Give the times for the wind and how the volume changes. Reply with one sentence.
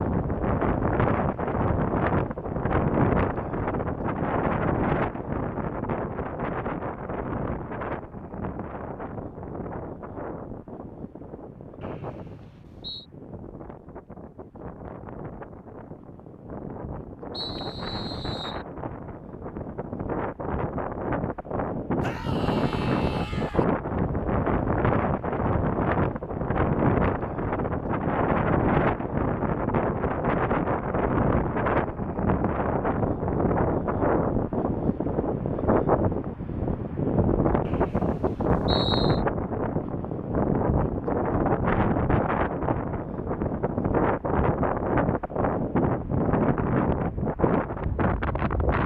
The wind can be heard from 0.0 to 48.8 s, getting quieter then louder.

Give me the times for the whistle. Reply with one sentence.
The whistle can be heard from 11.8 to 13.1 s, from 17.3 to 18.6 s and from 37.6 to 39.2 s.